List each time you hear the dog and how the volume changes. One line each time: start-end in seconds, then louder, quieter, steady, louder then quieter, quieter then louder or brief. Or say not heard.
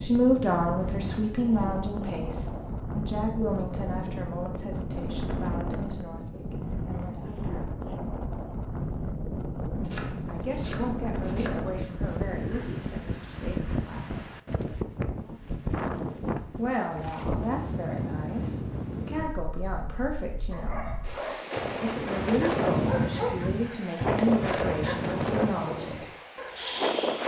20.5-27.2 louder then quieter.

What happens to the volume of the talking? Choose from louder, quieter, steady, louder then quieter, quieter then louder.
quieter then louder.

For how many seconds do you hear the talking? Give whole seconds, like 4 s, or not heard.
20 s.